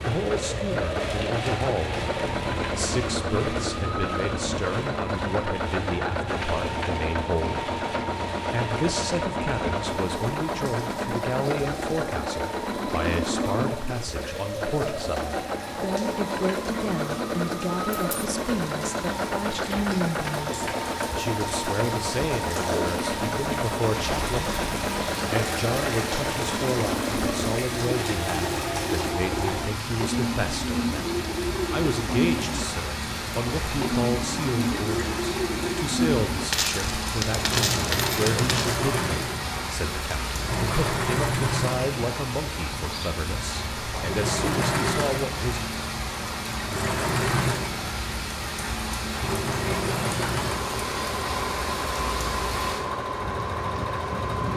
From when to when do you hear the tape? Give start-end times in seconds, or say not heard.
22.6-23.4.